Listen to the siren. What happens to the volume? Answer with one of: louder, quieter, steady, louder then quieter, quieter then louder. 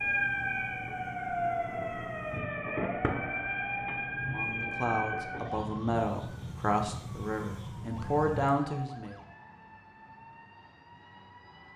quieter.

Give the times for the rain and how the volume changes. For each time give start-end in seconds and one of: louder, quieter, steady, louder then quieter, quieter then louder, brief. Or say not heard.
not heard.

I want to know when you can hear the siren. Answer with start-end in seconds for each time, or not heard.
0.0-11.7.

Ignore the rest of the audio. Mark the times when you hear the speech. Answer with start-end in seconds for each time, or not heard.
4.2-9.2.